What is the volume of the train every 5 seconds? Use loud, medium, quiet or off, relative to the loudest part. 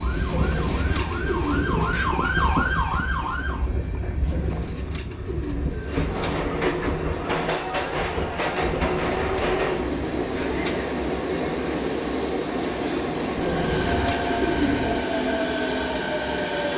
medium, loud, loud, loud.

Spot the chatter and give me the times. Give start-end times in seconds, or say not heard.
not heard.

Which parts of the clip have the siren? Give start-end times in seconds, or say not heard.
0.0-3.7.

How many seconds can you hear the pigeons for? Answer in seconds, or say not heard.
8 s.